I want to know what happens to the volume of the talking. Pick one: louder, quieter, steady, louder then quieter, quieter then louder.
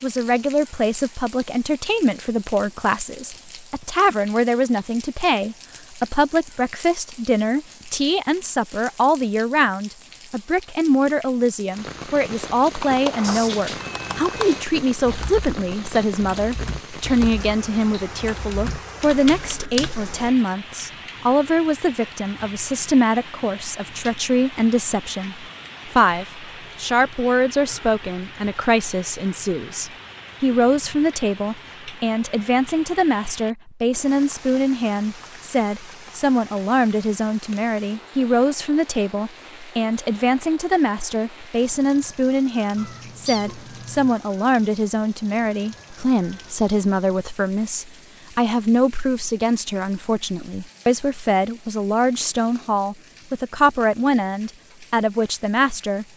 steady.